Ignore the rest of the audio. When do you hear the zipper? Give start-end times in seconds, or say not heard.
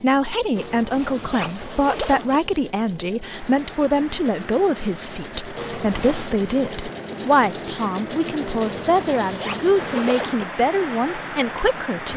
0.6-2.4, 5.5-6.3, 8.6-10.4.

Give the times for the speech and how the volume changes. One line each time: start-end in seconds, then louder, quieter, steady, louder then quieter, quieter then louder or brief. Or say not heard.
0.0-12.1 steady.